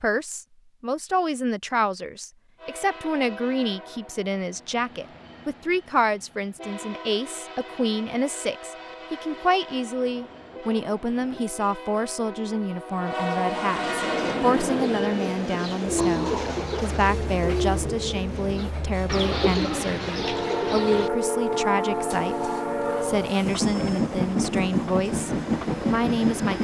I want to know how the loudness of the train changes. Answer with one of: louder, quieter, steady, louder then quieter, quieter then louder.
louder.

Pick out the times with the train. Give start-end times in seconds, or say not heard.
2.5-26.5.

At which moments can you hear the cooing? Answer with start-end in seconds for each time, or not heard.
14.1-21.1.